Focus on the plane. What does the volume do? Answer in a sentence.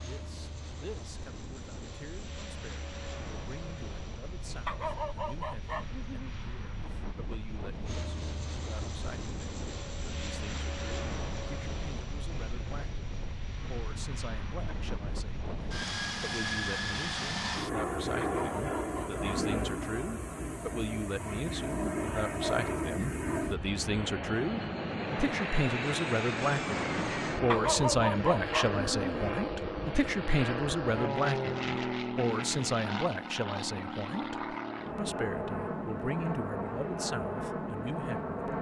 The loudness of the plane goes up.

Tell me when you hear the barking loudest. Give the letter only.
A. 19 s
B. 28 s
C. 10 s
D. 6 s
B.